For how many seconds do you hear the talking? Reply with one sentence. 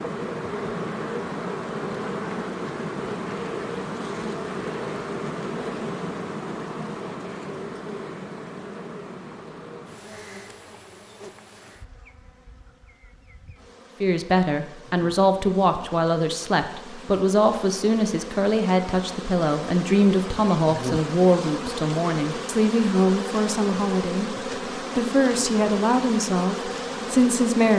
The talking can be heard for 14 seconds in total.